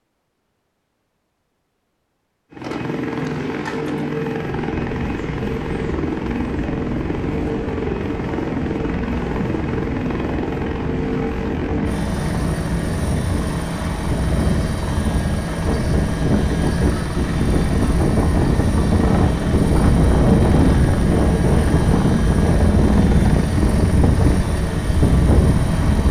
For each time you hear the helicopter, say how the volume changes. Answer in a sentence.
The helicopter can be heard from 2.5 to 26.0 s, at a steady volume.